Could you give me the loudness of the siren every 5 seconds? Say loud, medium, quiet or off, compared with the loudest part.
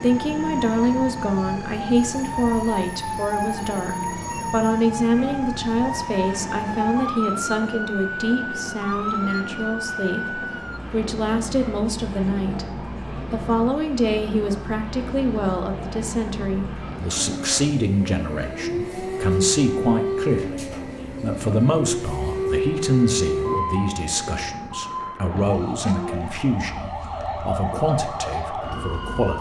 loud, loud, medium, loud, loud, loud.